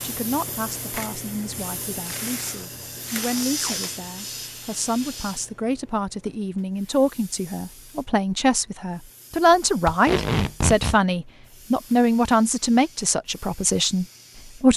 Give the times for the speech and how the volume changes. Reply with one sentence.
You can hear the speech from 0.0 to 14.7 s, getting louder.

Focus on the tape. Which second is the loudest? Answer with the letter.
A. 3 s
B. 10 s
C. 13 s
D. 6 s
B.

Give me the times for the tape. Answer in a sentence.
You can hear the tape from 2.0 to 3.8 s and from 9.8 to 11.0 s.